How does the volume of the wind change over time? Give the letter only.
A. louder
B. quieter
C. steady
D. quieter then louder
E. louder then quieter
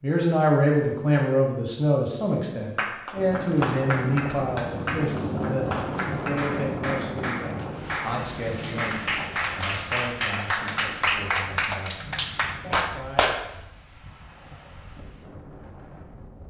B.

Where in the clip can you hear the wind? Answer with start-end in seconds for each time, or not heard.
3.1-16.4.